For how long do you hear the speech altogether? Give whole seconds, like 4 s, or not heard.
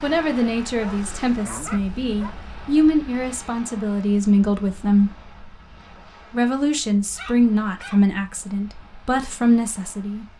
9 s.